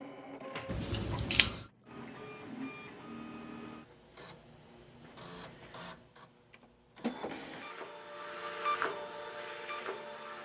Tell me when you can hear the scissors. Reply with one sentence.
The scissors can be heard from 0.7 to 1.6 s.